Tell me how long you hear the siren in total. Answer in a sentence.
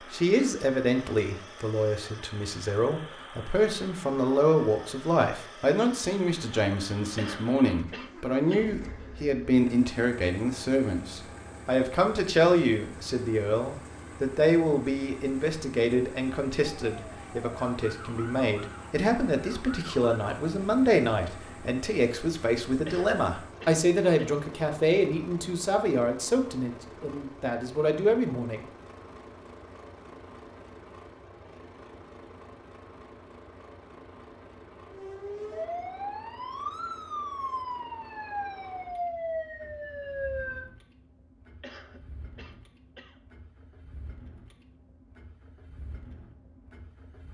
The siren can be heard for 9 seconds in total.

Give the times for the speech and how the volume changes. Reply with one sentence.
You can hear the speech from 0.1 to 28.6 s, at a steady volume.